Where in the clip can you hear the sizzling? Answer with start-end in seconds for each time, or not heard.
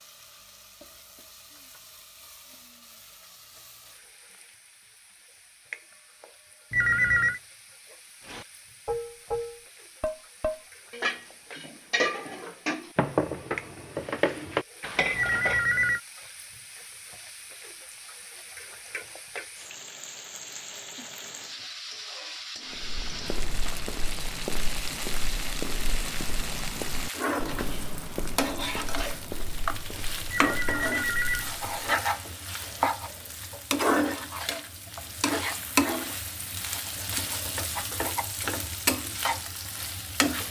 0.0-40.4.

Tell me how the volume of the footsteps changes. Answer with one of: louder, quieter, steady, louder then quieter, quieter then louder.
quieter.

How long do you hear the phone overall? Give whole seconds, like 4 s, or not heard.
3 s.